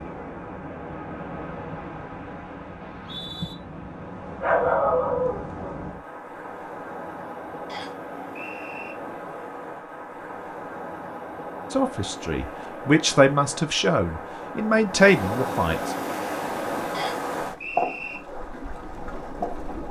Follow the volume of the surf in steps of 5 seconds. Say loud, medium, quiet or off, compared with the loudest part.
medium, medium, medium, loud.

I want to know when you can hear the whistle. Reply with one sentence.
The whistle can be heard from 2.8 to 3.5 s, from 7.7 to 8.9 s and from 16.9 to 18.2 s.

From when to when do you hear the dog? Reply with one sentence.
The dog can be heard from 4.4 to 5.8 s.